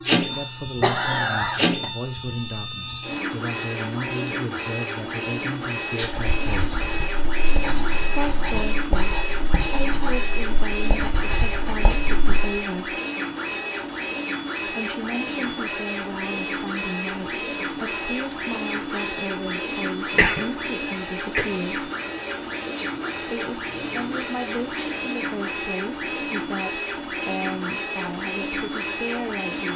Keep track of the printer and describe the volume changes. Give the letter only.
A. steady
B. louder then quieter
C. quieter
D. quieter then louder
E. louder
A.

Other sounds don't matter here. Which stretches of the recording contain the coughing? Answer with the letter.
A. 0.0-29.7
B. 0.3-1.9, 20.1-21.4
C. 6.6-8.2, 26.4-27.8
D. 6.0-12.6
B.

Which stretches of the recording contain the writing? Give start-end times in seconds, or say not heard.
6.0-12.6.